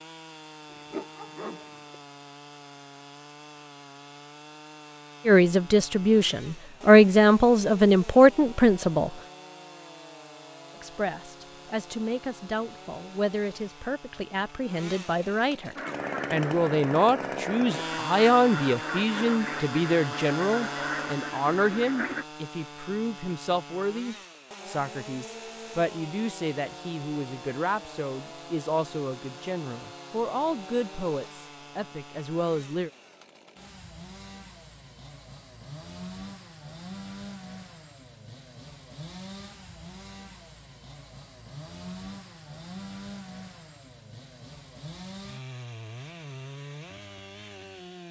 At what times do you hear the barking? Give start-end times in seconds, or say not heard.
0.7-2.0.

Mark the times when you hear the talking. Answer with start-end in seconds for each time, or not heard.
5.2-9.1, 10.8-32.9.